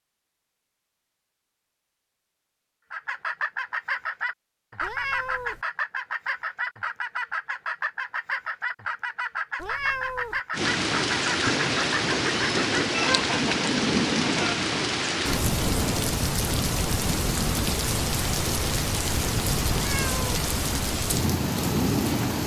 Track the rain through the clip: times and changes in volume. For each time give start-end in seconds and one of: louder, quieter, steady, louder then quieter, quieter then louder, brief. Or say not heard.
10.5-22.4 steady.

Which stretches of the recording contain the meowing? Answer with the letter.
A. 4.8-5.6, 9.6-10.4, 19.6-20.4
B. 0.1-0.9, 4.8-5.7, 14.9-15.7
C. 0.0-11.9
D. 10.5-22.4
A.